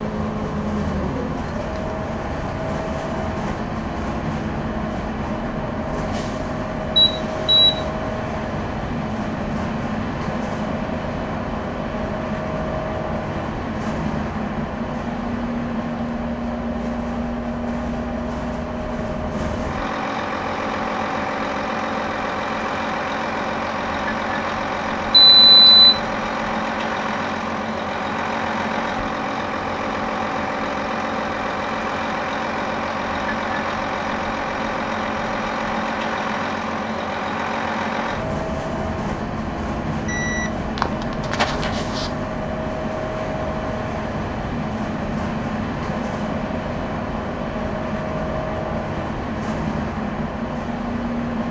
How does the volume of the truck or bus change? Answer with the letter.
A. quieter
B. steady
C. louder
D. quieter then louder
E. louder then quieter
B.